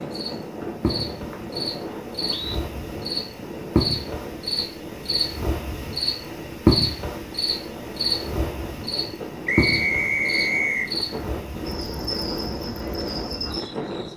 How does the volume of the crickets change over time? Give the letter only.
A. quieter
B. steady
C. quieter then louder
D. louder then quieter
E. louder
D.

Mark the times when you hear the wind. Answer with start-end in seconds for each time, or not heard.
0.0-14.1.